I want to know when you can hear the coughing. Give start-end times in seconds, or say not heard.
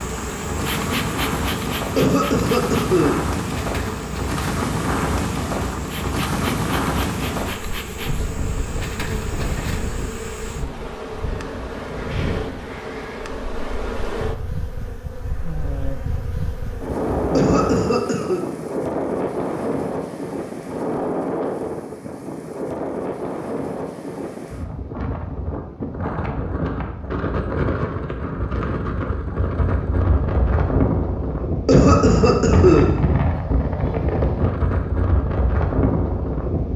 1.9-3.1, 17.4-18.4, 31.6-32.9.